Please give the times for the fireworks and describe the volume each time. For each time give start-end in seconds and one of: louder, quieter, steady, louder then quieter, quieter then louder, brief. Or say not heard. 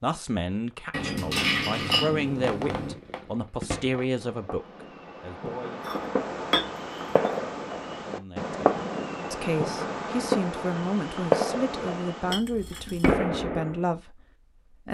1.8-13.8 louder.